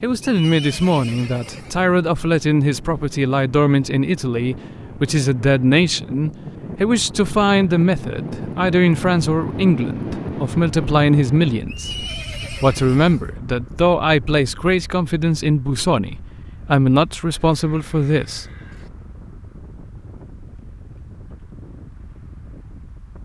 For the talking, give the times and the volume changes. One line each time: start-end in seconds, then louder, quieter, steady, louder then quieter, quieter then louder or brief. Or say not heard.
0.0-18.4 steady.